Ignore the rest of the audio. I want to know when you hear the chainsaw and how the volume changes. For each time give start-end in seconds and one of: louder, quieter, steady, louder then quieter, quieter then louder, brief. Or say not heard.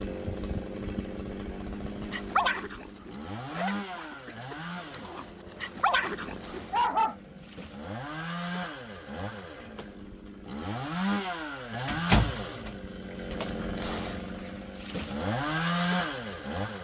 0.0-16.7 louder.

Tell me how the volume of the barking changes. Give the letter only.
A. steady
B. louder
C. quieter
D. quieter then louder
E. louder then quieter
D.